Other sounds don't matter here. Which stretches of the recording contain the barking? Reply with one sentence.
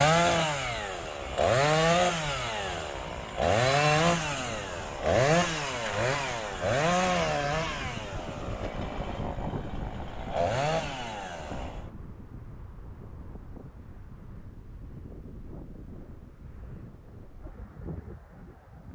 The barking can't be heard in this clip.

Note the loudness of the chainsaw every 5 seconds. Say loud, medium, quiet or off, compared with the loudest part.
loud, loud, medium, off.